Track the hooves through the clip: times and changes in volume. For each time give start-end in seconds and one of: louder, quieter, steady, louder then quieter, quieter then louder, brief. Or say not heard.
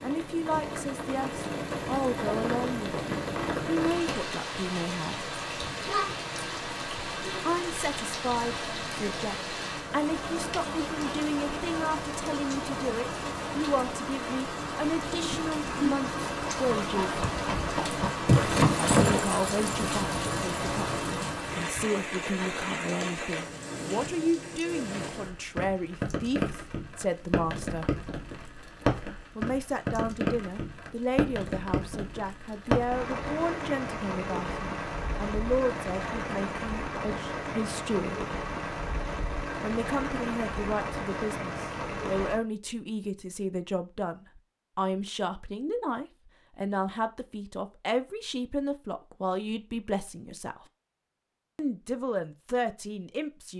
15.2-21.9 louder then quieter.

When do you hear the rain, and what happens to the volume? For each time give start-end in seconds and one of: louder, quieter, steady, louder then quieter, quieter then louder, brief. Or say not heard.
0.0-42.4 steady.